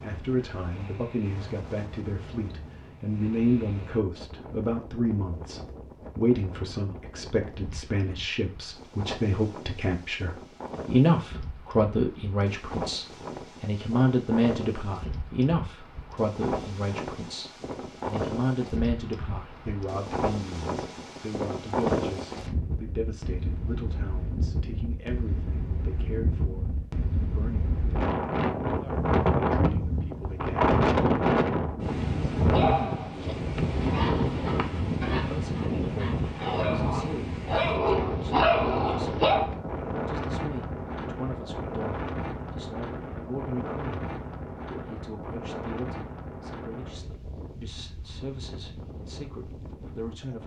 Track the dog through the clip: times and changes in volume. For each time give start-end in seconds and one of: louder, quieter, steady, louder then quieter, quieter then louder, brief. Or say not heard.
32.5-39.5 louder.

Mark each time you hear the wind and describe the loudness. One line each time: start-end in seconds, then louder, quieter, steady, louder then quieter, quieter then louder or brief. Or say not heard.
0.0-50.4 louder then quieter.